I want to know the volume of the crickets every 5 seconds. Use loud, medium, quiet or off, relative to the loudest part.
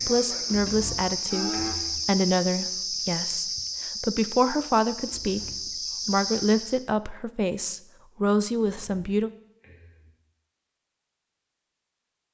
loud, loud, off.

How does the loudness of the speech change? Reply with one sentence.
The volume of the speech stays about the same.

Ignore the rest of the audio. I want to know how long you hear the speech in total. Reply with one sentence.
The speech can be heard for 9 seconds in total.